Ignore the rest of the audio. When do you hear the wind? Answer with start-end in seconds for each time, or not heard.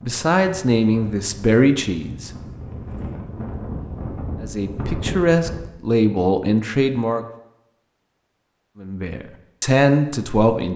0.0-5.6.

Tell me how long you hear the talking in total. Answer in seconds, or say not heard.
7 s.